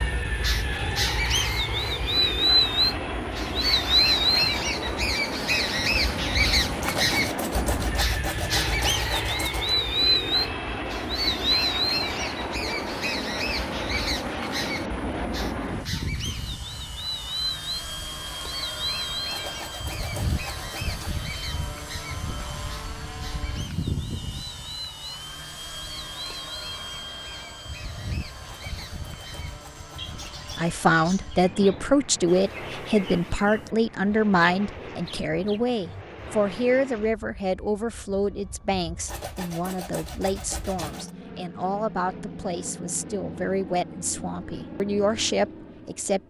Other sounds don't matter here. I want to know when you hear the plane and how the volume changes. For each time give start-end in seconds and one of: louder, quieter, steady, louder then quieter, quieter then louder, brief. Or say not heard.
0.0-46.2 quieter.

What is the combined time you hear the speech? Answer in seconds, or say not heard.
16 s.